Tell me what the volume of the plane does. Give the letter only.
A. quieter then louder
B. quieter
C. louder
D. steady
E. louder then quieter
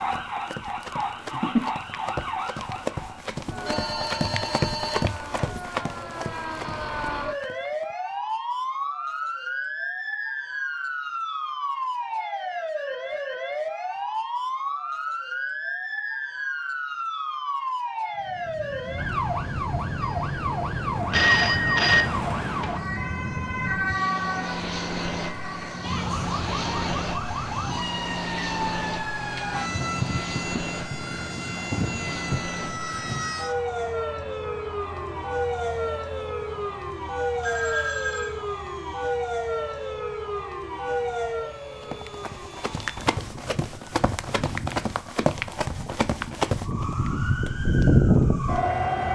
B.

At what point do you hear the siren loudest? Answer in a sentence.
The loudest moment of the siren is at 48 seconds.